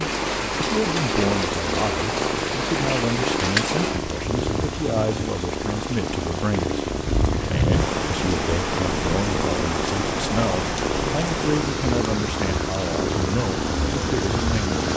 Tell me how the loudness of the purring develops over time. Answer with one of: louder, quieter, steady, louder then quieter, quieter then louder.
steady.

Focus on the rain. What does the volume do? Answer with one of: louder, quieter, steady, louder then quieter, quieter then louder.
steady.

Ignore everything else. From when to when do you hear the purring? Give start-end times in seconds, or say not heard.
0.0-14.9.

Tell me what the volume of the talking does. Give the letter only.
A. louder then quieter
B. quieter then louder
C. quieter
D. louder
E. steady
E.